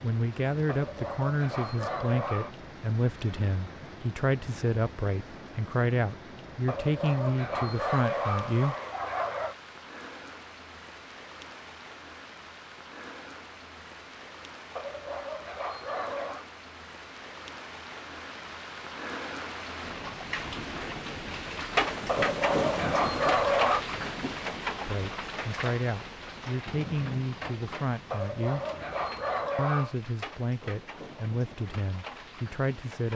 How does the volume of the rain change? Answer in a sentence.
The volume of the rain goes up, then down.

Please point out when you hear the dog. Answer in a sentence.
The dog can be heard from 0.7 to 2.5 s, from 6.7 to 9.6 s, from 14.8 to 16.4 s, from 22.1 to 23.8 s and from 28.1 to 29.9 s.